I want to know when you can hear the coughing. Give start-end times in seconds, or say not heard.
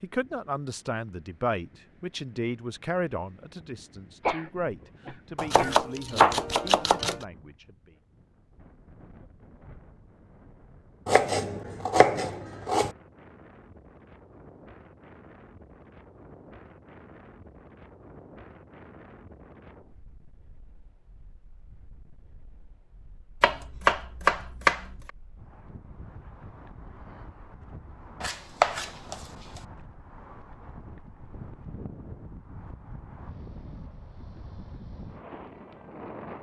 4.2-5.8.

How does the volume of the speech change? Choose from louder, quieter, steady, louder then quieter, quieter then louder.
quieter.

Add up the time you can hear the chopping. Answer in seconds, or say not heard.
6 s.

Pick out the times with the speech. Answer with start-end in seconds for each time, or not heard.
0.0-8.0.